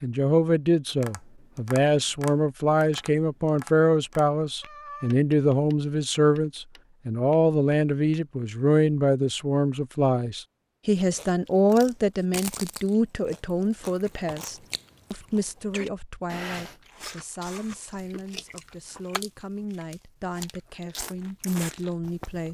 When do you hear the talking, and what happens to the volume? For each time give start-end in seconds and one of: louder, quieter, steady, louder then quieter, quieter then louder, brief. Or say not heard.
0.0-22.4 quieter.